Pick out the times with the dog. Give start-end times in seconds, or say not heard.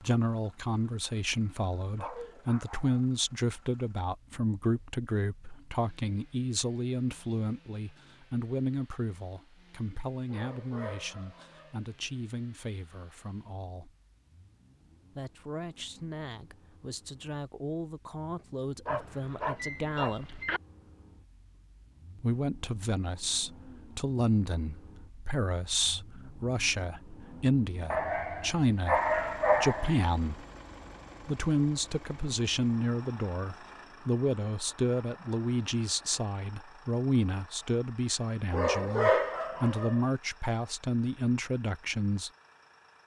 1.9-3.0, 10.3-11.8, 18.9-20.6, 27.9-30.1, 38.5-40.0.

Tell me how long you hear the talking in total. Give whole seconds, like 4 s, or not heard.
39 s.